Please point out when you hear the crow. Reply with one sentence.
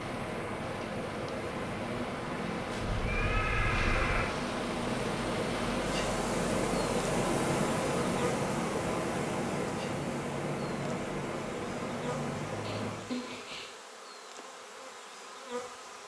The crow can't be heard in this clip.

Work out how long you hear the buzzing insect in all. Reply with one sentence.
The buzzing insect can be heard for 16 seconds in total.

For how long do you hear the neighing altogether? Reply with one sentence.
You can hear the neighing for 3 seconds altogether.